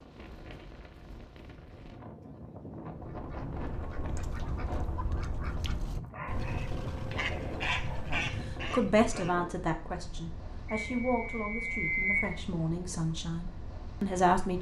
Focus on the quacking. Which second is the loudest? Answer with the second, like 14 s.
8 s.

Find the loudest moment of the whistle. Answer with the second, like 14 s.
12 s.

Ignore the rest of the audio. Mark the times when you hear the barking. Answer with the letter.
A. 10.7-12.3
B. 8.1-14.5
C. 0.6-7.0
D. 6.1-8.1
D.